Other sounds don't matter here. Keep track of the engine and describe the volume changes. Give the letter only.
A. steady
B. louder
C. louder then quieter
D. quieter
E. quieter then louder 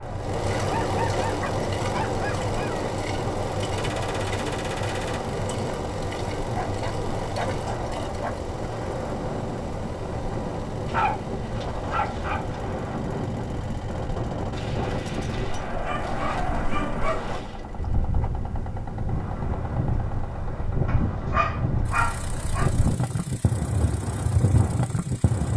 D.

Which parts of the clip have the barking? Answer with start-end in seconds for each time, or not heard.
0.6-2.9, 6.4-8.5, 10.8-12.6, 15.8-17.4, 20.9-22.7.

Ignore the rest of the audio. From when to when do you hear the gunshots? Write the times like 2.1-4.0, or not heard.
3.8-5.2, 14.5-17.6.